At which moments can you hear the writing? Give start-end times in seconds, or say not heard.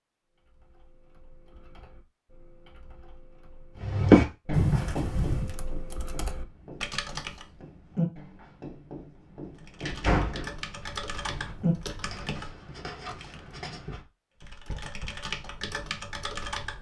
3.8-15.3.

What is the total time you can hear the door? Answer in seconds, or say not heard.
3 s.